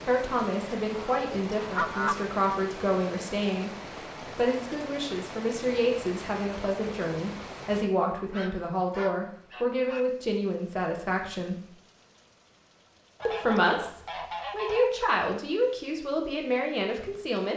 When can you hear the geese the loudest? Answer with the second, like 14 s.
2 s.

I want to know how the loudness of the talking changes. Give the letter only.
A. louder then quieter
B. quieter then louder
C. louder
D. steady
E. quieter
D.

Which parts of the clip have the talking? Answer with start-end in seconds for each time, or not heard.
0.1-3.7, 4.3-11.7, 13.2-17.5.